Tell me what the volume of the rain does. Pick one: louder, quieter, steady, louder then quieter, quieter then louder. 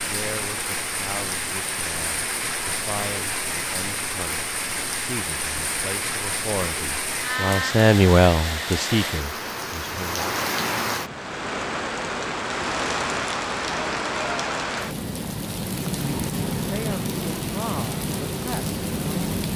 steady.